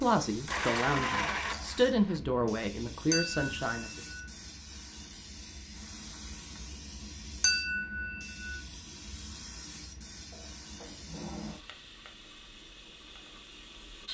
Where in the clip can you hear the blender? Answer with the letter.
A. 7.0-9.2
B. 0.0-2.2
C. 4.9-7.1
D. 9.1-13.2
B.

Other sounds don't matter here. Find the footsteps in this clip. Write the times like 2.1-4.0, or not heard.
not heard.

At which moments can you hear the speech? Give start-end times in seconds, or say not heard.
0.0-4.0.